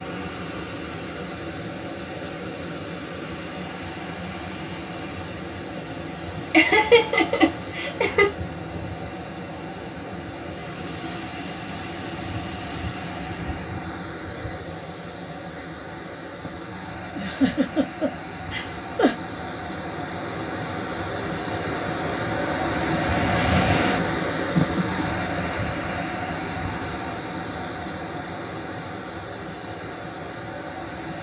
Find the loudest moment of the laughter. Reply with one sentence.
The loudest moment of the laughter is at 7 seconds.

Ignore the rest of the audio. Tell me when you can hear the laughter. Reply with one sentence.
You can hear the laughter from 6.5 to 8.3 s, from 17.1 to 19.1 s and from 23.9 to 25.1 s.